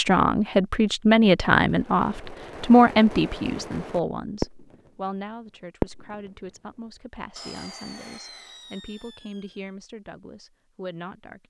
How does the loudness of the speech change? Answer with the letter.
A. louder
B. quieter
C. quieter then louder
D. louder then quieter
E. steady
B.